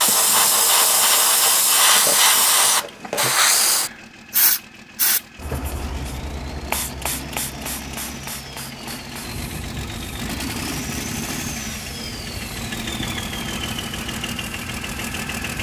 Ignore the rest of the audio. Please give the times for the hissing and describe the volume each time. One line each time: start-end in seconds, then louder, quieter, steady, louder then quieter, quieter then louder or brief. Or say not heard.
0.0-15.5 quieter.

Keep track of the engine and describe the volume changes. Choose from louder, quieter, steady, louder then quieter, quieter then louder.
louder.